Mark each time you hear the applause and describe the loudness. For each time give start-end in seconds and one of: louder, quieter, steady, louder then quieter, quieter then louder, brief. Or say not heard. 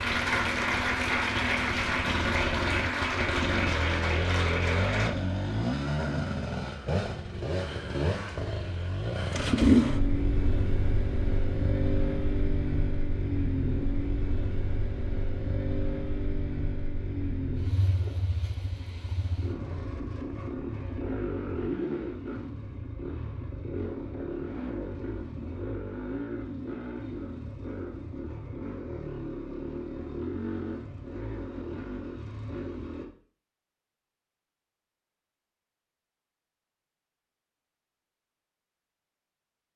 0.0-5.1 steady.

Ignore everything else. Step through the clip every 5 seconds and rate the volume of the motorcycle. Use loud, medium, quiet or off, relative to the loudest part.
medium, loud, medium, medium, medium, medium, medium, off.